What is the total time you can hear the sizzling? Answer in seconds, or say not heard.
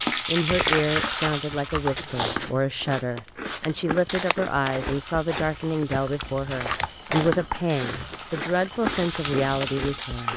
8 s.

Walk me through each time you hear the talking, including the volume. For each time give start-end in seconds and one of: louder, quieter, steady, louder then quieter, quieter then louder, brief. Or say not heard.
0.2-10.3 steady.